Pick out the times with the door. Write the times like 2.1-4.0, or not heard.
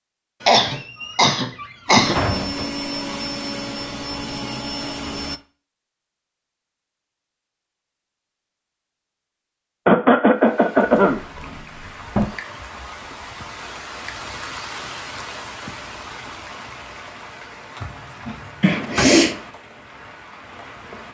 0.4-2.7, 11.1-12.2, 17.8-19.1.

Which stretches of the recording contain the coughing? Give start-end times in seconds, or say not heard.
0.5-2.2, 9.8-11.2, 18.6-19.4.